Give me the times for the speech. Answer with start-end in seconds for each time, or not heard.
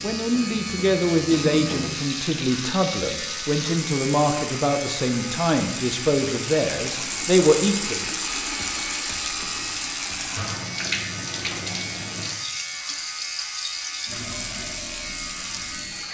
0.0-8.1.